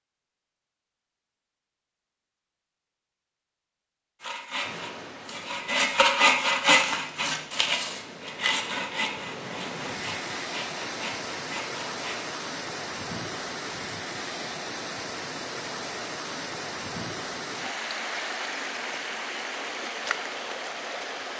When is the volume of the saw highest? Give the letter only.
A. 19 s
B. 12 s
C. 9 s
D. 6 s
D.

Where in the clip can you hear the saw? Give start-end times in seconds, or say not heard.
4.2-12.3.